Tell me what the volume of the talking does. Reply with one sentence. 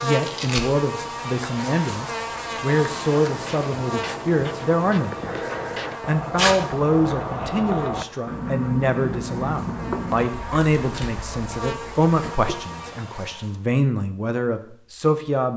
The loudness of the talking stays about the same.